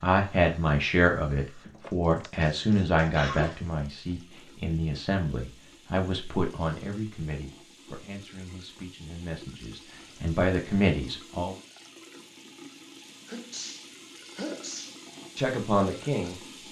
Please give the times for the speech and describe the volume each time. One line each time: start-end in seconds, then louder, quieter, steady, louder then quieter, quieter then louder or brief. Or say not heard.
0.0-11.6 quieter then louder
15.3-16.4 brief.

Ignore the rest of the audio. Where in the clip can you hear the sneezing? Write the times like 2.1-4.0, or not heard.
1.8-3.6, 13.2-15.1.